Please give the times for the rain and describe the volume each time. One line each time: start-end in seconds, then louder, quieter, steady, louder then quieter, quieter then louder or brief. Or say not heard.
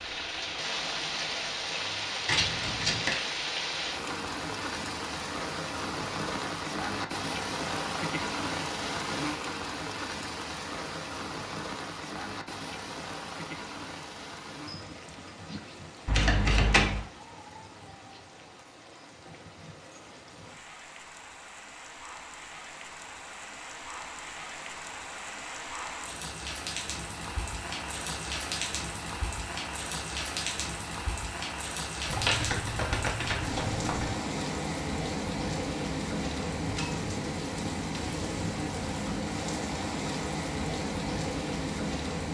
0.0-42.2 quieter then louder.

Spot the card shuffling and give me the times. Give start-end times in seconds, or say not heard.
2.2-3.1, 16.1-17.0, 32.0-34.1.